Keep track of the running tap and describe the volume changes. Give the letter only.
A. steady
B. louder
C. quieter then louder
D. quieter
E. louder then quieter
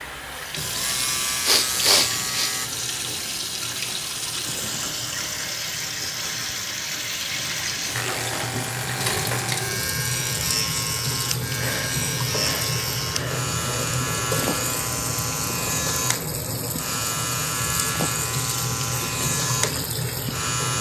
A.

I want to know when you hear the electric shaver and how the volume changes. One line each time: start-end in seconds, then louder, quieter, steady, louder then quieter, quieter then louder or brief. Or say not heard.
0.0-2.7 brief
7.9-20.7 steady.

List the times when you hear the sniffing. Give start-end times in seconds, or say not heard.
1.4-2.5, 11.1-13.4.